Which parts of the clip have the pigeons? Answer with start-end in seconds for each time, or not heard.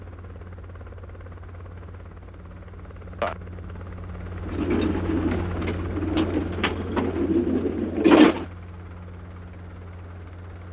4.5-8.4.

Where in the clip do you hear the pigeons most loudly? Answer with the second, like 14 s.
8 s.